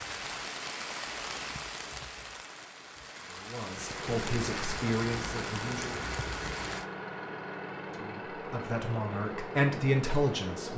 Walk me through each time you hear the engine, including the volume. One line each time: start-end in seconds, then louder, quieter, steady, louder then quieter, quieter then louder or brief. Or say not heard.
3.6-10.7 steady.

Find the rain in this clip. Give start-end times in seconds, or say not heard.
0.0-6.8.